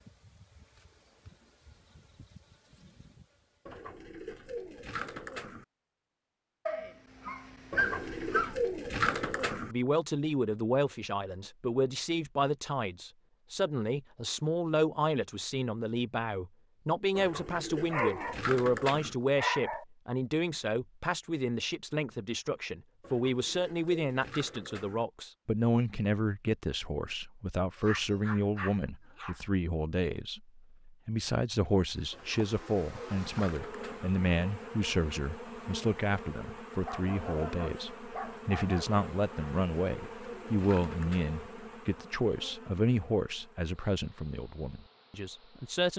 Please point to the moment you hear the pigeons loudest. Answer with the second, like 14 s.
9 s.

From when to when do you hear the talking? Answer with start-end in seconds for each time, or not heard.
9.7-45.9.